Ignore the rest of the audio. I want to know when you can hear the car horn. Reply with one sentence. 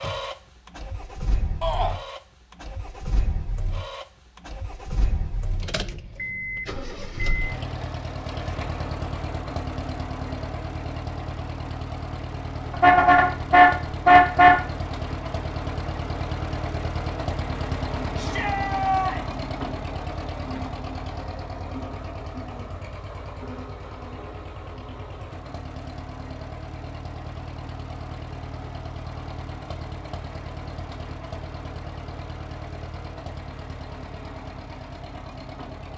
You can hear the car horn from 12.7 to 14.6 s.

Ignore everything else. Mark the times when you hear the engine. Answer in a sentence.
You can hear the engine from 0.0 to 35.9 s.